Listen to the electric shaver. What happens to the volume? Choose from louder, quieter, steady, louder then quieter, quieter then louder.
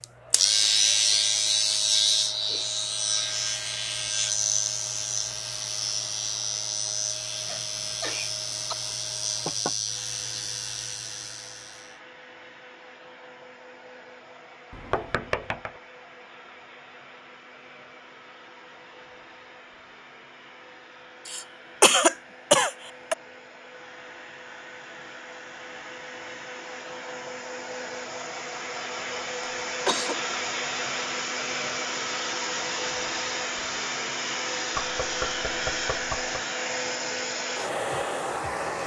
quieter.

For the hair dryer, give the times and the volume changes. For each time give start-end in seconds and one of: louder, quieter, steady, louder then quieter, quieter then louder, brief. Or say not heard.
0.0-38.8 louder.